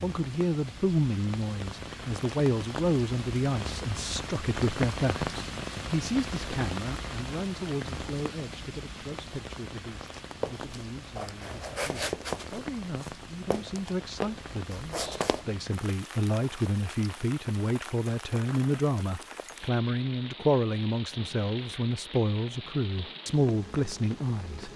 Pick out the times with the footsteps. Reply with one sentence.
You can hear the footsteps from 10.4 to 15.4 s.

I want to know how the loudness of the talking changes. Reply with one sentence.
The loudness of the talking goes down, then up.